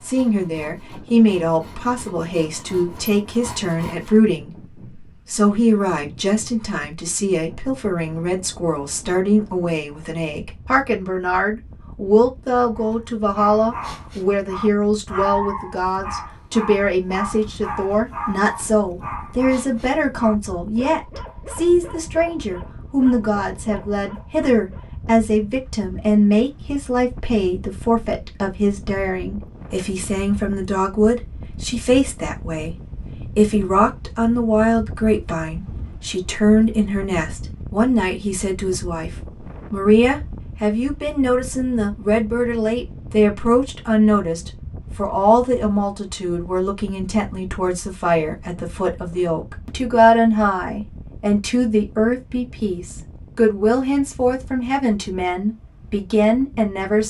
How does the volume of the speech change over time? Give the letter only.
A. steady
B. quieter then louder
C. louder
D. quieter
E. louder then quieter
A.